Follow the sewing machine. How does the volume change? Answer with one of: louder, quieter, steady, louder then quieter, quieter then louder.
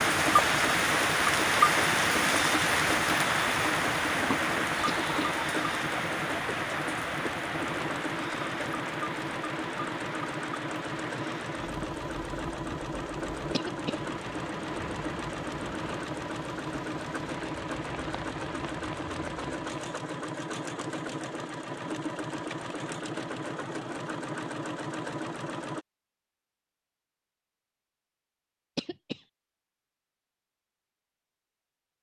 steady.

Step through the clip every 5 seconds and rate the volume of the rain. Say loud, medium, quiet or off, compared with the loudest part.
loud, medium, quiet, quiet, off, off, off.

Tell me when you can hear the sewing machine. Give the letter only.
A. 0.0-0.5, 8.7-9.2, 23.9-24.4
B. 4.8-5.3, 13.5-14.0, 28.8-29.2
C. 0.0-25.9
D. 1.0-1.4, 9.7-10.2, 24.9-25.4
C.